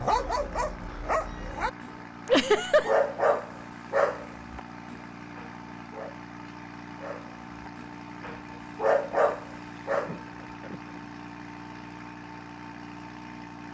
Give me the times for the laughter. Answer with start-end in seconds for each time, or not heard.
2.2-3.0, 9.9-11.1.